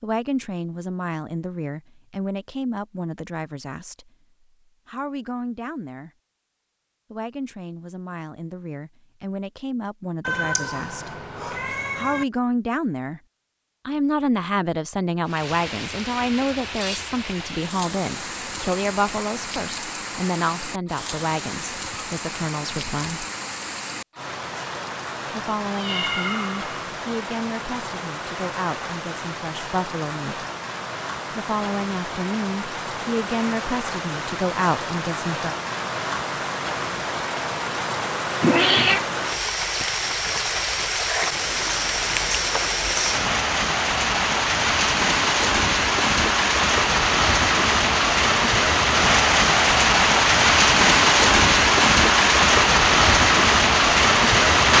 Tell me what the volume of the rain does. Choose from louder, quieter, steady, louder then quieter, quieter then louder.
louder.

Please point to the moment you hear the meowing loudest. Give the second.
39 s.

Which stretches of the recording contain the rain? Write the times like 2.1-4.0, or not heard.
15.2-54.7.